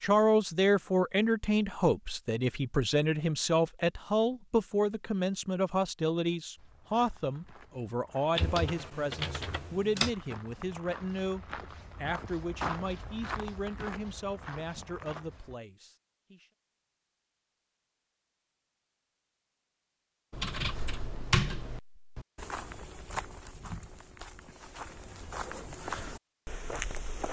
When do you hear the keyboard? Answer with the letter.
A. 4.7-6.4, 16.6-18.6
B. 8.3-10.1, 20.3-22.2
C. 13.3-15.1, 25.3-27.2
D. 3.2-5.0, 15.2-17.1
B.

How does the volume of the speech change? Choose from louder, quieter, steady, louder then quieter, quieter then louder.
quieter.